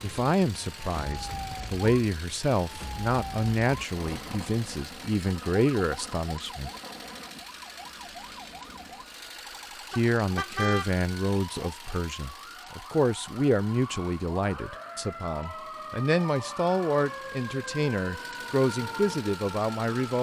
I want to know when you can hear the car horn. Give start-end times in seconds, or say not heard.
9.9-10.9.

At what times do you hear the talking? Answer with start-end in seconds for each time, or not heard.
0.0-6.7, 9.9-20.1.